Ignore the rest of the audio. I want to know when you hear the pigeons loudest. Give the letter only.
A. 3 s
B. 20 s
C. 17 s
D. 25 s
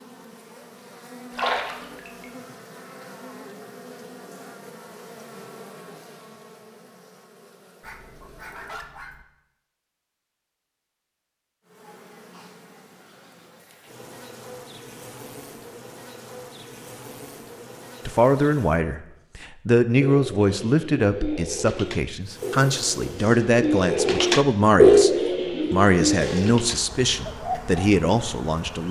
D.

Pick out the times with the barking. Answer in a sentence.
The barking can be heard from 7.8 to 9.2 s.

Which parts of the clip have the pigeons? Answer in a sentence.
You can hear the pigeons from 20.0 to 27.9 s.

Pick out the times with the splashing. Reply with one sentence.
You can hear the splashing from 1.4 to 2.2 s.